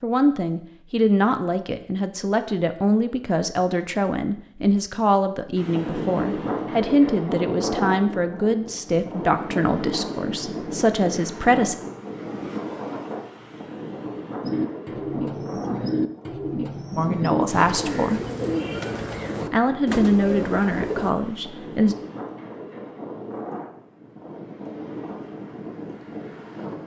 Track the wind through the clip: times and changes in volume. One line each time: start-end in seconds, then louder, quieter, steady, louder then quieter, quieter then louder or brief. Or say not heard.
5.5-26.8 quieter.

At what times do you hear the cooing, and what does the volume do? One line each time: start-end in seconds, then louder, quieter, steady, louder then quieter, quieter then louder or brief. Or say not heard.
14.4-21.1 steady.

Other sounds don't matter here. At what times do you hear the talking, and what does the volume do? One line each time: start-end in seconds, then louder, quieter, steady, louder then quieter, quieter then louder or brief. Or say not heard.
0.0-11.8 steady
16.9-18.2 brief
19.5-21.9 brief.